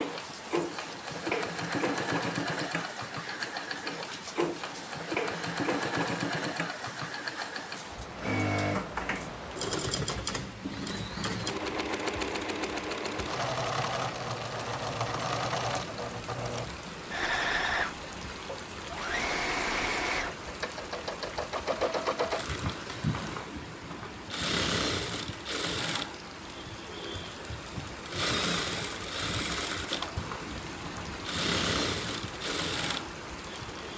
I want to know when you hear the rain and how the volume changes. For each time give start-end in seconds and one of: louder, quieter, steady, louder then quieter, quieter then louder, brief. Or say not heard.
0.0-33.9 steady.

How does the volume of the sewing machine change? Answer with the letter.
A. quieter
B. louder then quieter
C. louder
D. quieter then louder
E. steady
E.